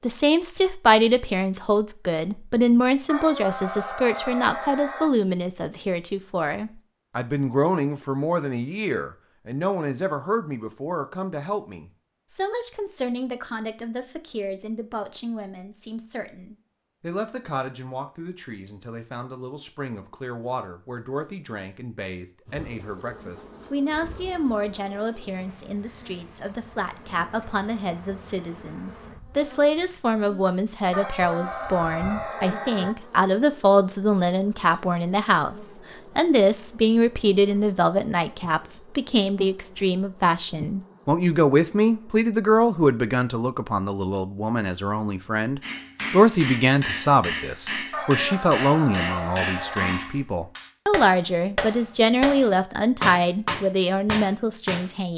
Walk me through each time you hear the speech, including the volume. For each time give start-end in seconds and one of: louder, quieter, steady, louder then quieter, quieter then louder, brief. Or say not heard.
0.0-55.1 quieter then louder.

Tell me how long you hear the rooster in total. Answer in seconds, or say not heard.
6 s.